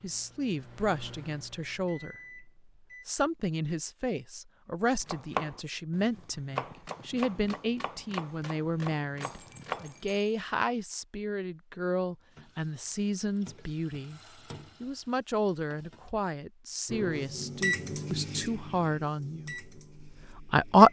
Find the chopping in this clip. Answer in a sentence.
You can hear the chopping from 5.0 to 10.2 s.